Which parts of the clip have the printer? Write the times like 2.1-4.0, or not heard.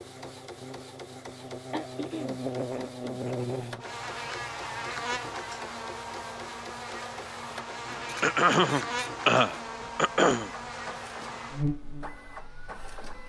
0.0-13.2.